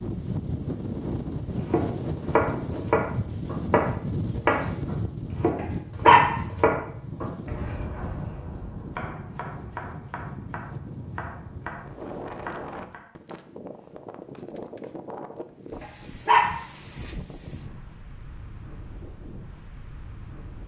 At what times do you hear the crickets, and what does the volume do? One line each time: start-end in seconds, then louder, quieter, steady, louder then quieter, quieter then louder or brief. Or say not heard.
not heard.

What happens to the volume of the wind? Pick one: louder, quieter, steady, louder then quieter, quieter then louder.
quieter.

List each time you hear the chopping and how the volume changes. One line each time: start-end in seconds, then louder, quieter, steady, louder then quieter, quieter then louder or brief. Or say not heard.
1.6-13.1 quieter.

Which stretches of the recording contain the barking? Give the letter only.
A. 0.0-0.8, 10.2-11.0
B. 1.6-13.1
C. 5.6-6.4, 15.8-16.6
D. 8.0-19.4
C.